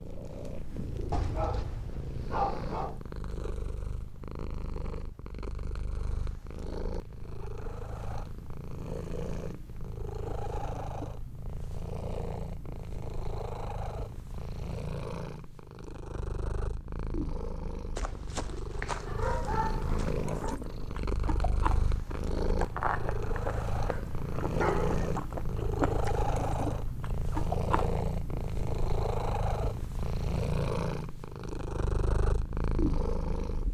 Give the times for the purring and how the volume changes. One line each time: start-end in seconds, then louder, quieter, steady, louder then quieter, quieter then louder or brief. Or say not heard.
0.0-33.7 louder.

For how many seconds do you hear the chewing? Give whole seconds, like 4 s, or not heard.
8 s.